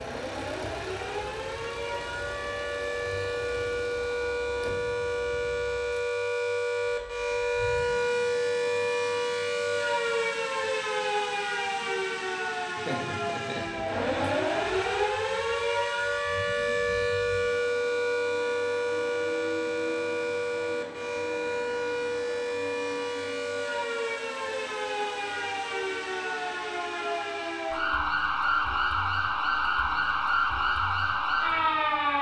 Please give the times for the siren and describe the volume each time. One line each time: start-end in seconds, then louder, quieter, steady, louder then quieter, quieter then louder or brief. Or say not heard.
0.0-32.1 steady.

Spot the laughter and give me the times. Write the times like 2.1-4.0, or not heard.
12.8-14.2.